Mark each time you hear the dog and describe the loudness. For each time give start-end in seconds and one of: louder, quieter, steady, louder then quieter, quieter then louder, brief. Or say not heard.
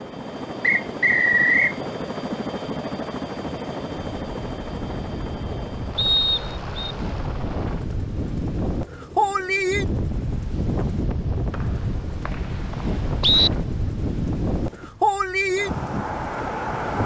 not heard.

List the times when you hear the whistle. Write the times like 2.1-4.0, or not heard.
0.6-1.8, 6.0-7.0, 11.5-13.5.